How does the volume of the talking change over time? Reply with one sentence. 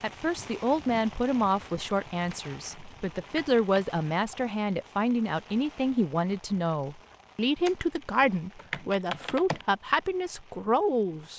The loudness of the talking stays about the same.